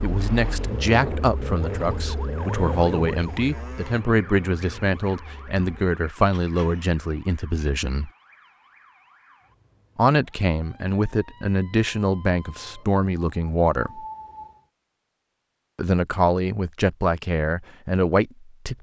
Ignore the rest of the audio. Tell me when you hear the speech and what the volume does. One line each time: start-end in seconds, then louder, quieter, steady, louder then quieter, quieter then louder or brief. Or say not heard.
0.0-8.1 steady
9.9-14.1 steady
15.8-18.7 brief.